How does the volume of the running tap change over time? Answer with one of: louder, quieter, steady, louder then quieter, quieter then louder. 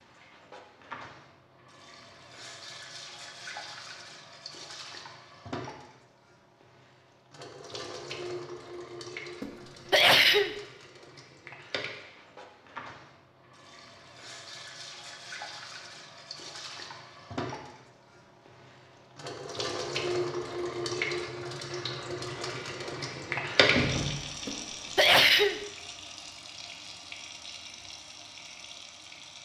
louder.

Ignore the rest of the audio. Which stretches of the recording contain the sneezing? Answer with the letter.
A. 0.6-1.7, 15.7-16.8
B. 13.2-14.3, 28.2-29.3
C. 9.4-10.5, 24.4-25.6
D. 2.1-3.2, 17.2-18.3
C.